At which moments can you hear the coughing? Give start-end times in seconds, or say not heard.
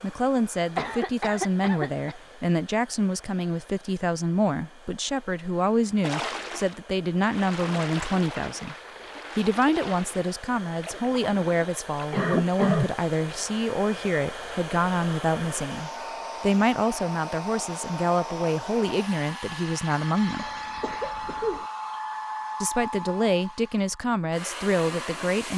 0.8-2.1, 12.1-12.9, 20.4-21.6.